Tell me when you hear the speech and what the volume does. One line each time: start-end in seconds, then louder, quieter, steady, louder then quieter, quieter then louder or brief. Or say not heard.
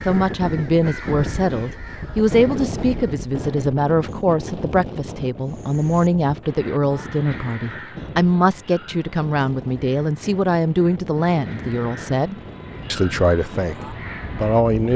0.1-14.9 steady.